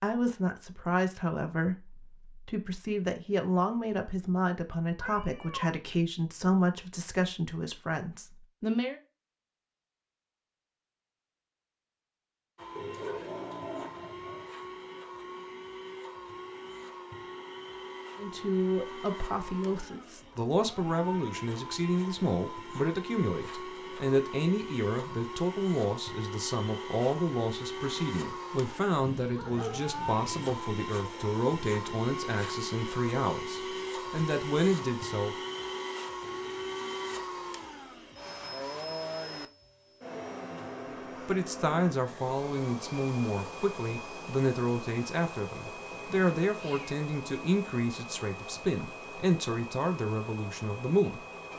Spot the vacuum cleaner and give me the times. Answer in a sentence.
You can hear the vacuum cleaner from 12.6 to 51.5 s.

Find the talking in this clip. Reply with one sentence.
The talking can be heard from 0.0 to 9.0 s, from 18.1 to 35.4 s and from 41.2 to 51.2 s.